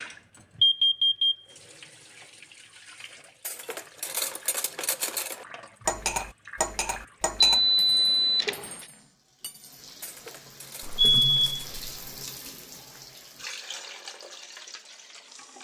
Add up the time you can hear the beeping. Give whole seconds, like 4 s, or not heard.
3 s.